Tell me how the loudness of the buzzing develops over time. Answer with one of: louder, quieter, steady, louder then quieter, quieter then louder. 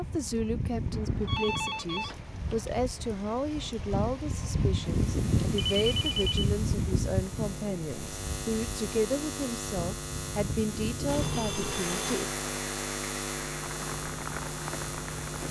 louder.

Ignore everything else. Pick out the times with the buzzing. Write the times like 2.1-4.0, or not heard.
4.9-15.4.